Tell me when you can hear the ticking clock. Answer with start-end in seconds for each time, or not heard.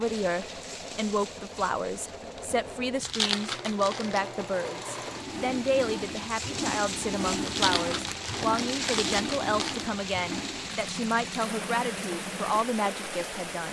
not heard.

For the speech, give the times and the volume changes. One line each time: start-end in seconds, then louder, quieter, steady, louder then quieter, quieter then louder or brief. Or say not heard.
0.0-13.6 steady.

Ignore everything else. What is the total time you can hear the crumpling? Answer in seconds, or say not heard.
4 s.